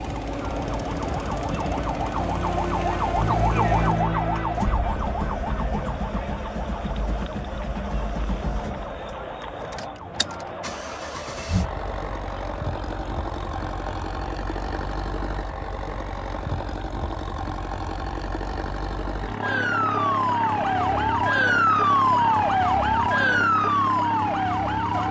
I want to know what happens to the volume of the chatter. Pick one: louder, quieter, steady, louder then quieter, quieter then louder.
quieter.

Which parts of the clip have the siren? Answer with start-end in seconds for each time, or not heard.
0.0-10.8, 19.4-25.0.